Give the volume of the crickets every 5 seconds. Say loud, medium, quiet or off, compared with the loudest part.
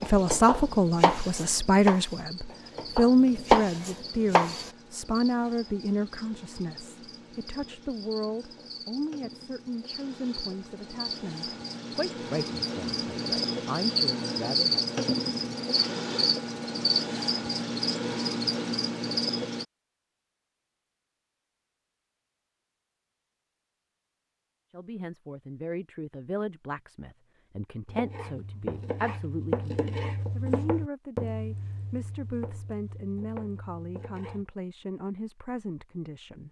quiet, quiet, loud, loud, off, off, off, off.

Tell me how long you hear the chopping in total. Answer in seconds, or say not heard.
11 s.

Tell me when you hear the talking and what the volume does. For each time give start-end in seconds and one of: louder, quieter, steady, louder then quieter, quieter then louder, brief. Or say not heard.
0.0-14.8 quieter
24.7-36.4 steady.